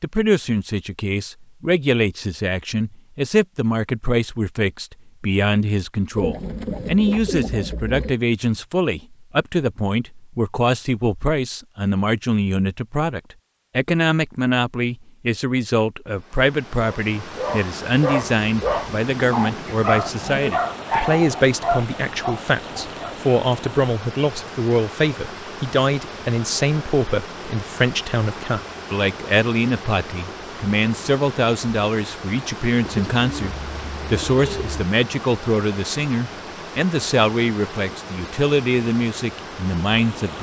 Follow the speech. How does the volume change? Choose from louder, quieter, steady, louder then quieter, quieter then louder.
steady.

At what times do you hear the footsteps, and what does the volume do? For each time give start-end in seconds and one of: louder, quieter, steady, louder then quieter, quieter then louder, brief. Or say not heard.
not heard.